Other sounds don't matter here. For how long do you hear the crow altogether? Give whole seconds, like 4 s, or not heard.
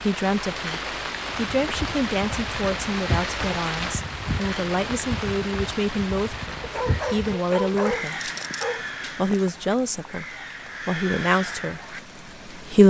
11 s.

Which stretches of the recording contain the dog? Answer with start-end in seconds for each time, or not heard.
6.6-9.5.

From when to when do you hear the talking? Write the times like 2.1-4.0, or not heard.
0.0-8.3, 9.2-10.2, 10.8-12.8.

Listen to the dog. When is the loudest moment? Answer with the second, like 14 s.
8 s.